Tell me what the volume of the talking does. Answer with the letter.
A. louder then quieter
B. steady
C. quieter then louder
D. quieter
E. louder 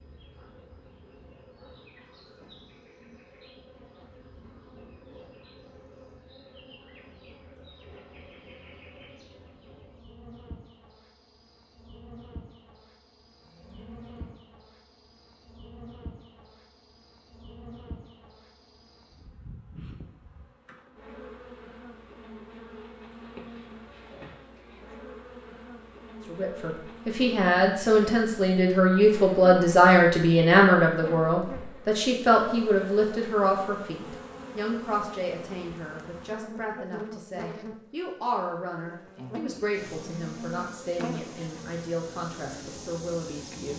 D.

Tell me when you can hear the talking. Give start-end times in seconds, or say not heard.
26.2-43.7.